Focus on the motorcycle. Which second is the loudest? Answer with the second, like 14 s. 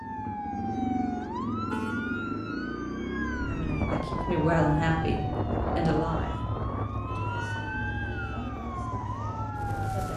1 s.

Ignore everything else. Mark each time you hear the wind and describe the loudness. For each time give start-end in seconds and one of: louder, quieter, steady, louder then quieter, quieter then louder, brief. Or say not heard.
3.4-10.1 quieter.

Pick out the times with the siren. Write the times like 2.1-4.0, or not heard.
0.0-10.1.